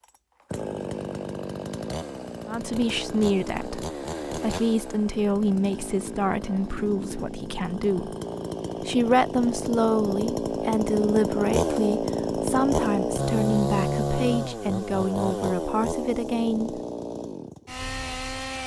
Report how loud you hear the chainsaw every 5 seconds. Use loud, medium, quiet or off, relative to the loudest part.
medium, medium, loud, medium.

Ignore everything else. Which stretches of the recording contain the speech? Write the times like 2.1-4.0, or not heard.
2.5-8.2, 8.8-16.8.